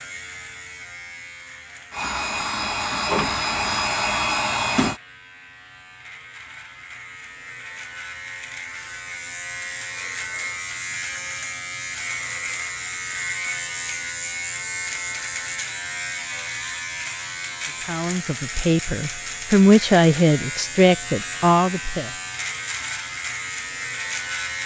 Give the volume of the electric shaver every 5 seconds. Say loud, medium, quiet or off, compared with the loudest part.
medium, medium, loud, loud, loud.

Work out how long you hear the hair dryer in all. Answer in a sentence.
The hair dryer can be heard for 3 seconds in total.